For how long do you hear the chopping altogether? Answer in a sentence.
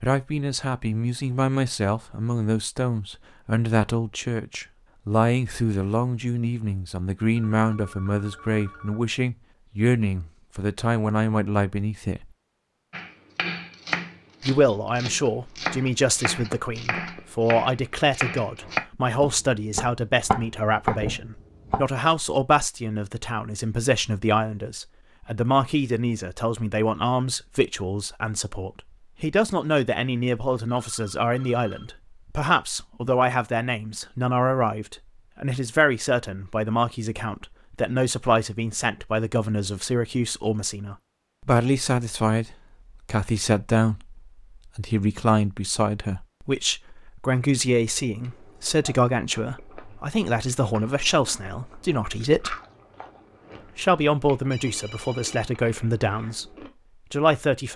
You can hear the chopping for 9 seconds altogether.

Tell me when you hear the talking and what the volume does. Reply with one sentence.
The talking can be heard from 0.0 to 12.3 s, at a steady volume; from 14.4 to 52.5 s, at a steady volume; briefly from 53.8 to 56.5 s; and briefly from 57.1 to 57.7 s.